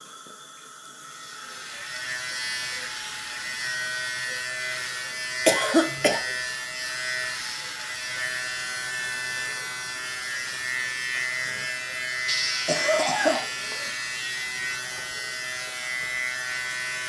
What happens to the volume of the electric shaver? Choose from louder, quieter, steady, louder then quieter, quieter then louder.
steady.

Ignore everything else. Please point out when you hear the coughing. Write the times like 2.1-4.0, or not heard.
5.5-6.2, 12.2-13.9.